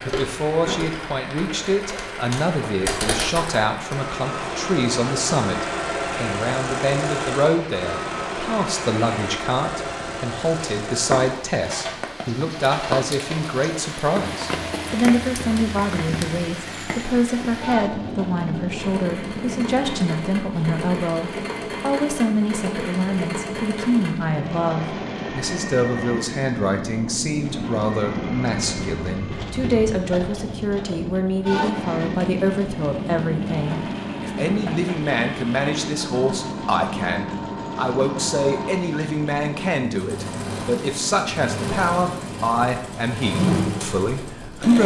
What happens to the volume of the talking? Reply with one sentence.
The loudness of the talking stays about the same.